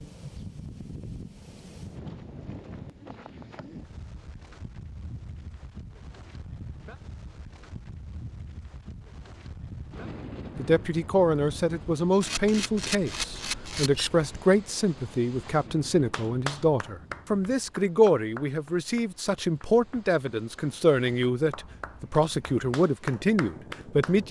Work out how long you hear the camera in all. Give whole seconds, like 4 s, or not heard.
2 s.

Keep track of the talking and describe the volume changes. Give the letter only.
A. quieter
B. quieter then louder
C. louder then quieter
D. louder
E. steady
E.